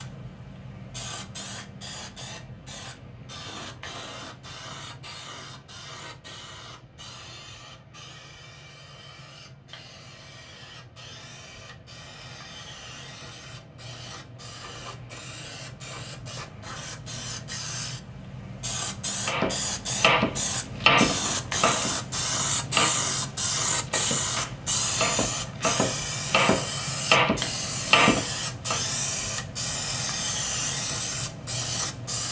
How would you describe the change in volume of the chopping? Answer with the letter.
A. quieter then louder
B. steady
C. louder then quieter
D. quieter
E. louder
A.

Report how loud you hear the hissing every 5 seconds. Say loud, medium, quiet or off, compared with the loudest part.
quiet, quiet, quiet, medium, loud, loud, loud.